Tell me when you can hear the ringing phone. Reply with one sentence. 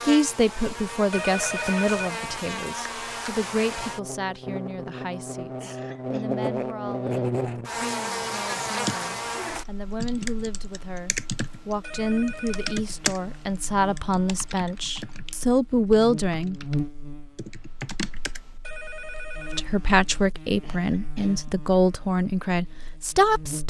The ringing phone can be heard from 1.1 to 2.5 s, from 11.8 to 13.4 s and from 18.6 to 20.1 s.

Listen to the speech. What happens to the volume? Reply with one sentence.
The loudness of the speech goes down, then up.